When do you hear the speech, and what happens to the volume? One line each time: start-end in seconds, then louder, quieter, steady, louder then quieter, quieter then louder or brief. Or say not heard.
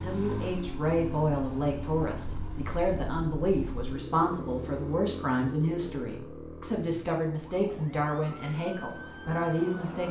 0.0-10.0 steady.